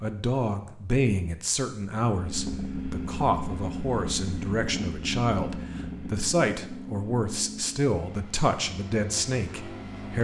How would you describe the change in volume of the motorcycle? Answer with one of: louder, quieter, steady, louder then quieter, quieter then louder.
quieter.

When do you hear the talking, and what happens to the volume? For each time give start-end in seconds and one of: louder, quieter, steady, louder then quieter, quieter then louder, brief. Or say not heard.
0.0-10.1 steady.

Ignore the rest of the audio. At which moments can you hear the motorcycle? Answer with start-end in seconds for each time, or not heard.
2.0-10.1.